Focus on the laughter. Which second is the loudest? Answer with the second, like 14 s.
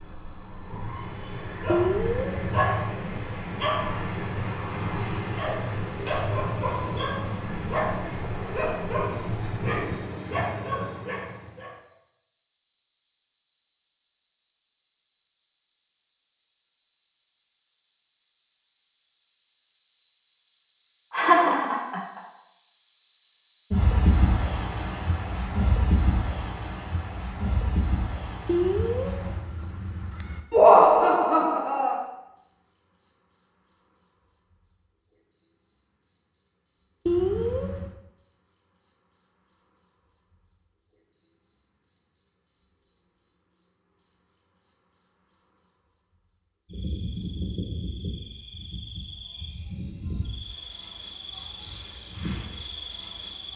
31 s.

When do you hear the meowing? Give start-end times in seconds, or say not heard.
1.6-2.6, 28.4-30.4, 37.0-38.0.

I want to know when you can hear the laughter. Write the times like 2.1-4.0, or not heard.
21.1-22.2, 30.5-31.9.